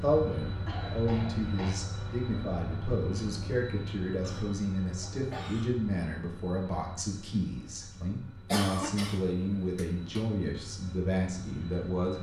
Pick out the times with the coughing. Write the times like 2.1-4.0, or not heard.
0.7-1.8, 4.2-5.8, 8.5-10.2.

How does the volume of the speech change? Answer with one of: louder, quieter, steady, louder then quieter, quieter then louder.
steady.